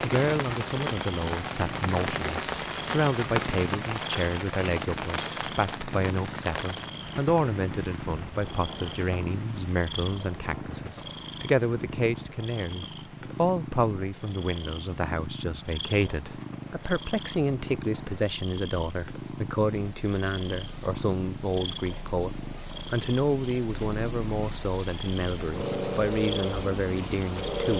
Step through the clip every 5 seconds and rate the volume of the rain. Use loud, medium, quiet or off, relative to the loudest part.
loud, medium, quiet, quiet, quiet, loud.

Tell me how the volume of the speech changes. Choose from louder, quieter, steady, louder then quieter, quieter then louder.
steady.